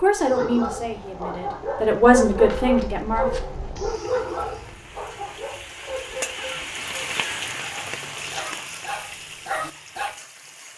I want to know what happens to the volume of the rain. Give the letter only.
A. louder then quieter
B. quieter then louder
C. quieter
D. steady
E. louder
A.